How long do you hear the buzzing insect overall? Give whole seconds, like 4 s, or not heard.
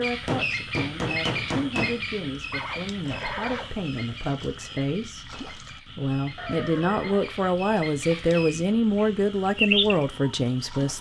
not heard.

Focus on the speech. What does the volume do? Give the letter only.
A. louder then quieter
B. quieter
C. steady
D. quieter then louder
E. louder
E.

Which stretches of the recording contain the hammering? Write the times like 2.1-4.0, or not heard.
0.2-2.0.